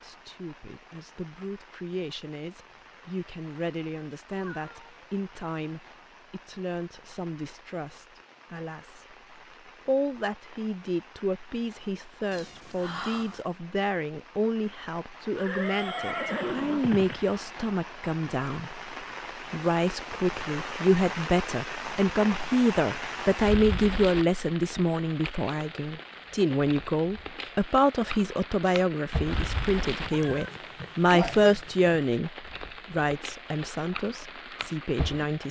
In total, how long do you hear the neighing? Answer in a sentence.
The neighing can be heard for 2 seconds in total.